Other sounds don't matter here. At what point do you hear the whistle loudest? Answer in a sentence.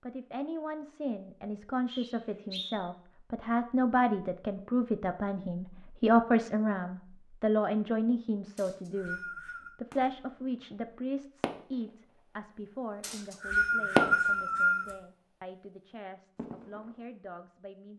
The volume of the whistle peaks at 14 seconds.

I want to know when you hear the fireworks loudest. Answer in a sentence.
The volume of the fireworks peaks at 14 seconds.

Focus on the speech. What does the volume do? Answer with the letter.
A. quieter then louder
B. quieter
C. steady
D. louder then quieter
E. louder
D.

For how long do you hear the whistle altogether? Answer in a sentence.
You can hear the whistle for 4 seconds altogether.